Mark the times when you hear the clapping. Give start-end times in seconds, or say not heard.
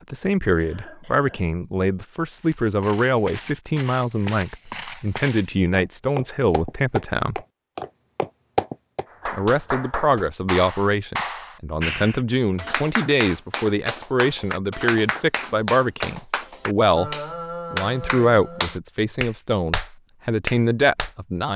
9.1-21.1.